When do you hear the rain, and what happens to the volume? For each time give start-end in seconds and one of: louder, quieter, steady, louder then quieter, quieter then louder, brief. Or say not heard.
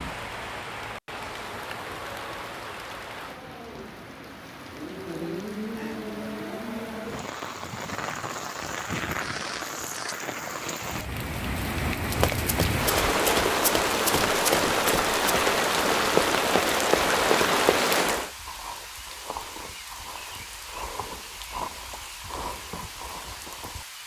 0.0-24.0 louder then quieter.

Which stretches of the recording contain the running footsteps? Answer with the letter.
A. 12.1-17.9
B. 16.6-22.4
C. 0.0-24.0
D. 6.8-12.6
A.